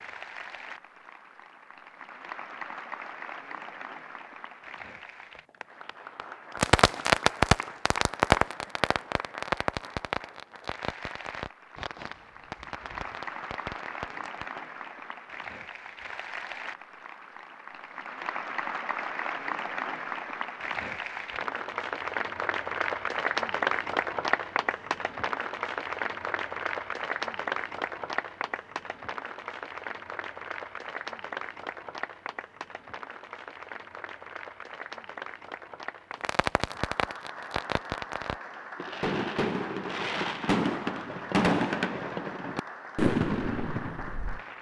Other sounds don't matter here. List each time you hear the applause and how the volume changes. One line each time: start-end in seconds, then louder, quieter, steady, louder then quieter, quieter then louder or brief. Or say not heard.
0.0-44.5 louder then quieter.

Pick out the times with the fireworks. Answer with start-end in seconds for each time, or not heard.
6.5-14.6, 36.2-44.4.